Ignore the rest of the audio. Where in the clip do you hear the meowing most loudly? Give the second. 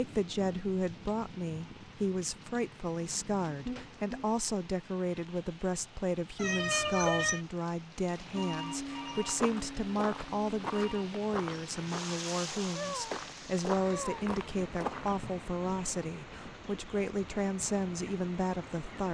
7 s.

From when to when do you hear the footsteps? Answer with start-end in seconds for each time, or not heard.
9.1-15.3.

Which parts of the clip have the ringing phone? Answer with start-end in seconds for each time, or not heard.
8.3-11.1.